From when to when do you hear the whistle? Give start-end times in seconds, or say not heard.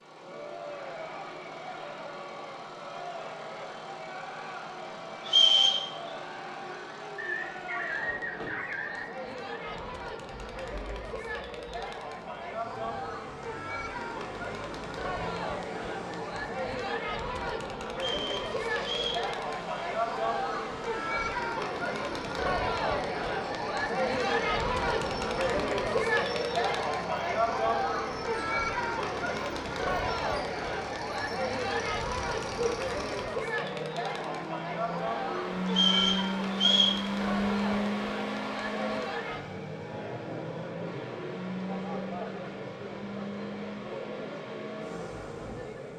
5.2-5.8, 17.9-19.2, 35.6-37.0.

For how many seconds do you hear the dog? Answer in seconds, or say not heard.
2 s.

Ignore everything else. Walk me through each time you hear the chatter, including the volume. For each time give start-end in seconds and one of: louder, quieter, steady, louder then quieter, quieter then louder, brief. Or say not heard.
0.1-45.9 louder then quieter.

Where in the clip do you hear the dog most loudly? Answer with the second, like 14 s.
8 s.